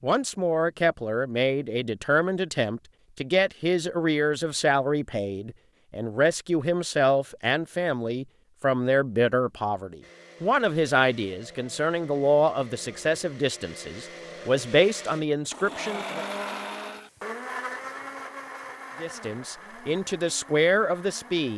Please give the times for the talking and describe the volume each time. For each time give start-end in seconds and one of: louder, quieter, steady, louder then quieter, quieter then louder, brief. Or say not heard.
0.0-16.2 steady
19.0-21.5 brief.